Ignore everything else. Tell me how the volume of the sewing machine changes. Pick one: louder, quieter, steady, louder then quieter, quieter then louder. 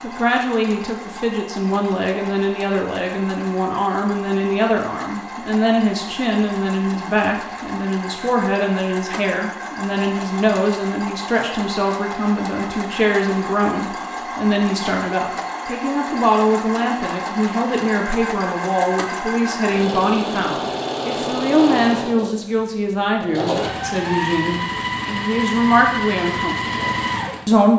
louder.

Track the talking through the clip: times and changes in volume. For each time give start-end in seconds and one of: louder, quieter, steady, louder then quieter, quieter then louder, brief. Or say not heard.
0.0-27.7 steady.